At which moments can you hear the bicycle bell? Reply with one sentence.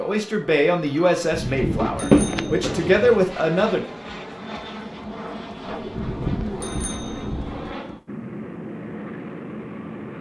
You can hear the bicycle bell from 1.3 to 2.7 s and from 5.9 to 7.7 s.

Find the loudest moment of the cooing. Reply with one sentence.
The volume of the cooing peaks at 2 seconds.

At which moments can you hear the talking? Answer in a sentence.
You can hear the talking from 0.0 to 3.9 s.